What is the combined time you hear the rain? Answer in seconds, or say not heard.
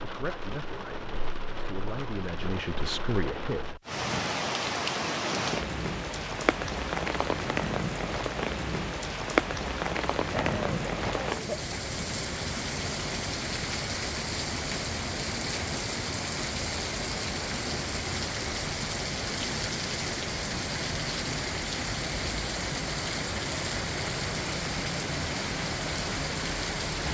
27 s.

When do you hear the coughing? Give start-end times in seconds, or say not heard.
10.3-11.8.